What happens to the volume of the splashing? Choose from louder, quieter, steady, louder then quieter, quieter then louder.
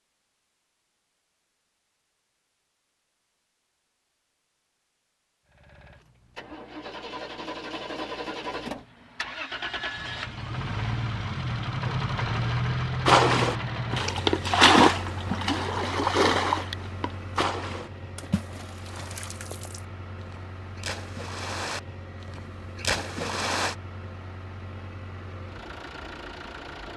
quieter then louder.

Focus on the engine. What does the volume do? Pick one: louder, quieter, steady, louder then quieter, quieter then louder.
louder then quieter.